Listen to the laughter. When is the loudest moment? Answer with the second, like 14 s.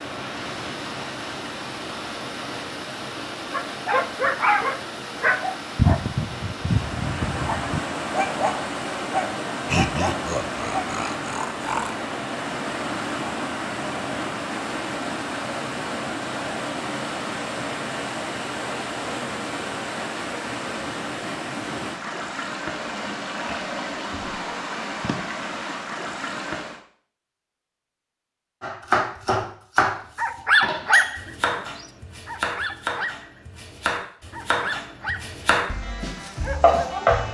10 s.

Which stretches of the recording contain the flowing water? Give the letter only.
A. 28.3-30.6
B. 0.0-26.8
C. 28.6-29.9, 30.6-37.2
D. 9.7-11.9
B.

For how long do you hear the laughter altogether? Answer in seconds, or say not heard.
2 s.